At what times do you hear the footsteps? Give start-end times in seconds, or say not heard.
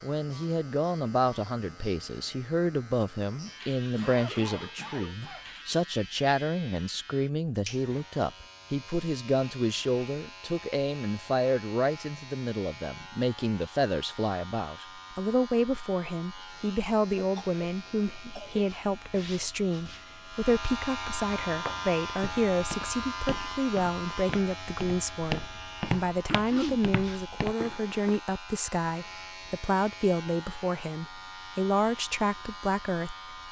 21.4-28.2.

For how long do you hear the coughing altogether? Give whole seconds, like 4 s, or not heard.
4 s.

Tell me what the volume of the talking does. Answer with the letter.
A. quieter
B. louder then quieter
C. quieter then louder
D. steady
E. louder
D.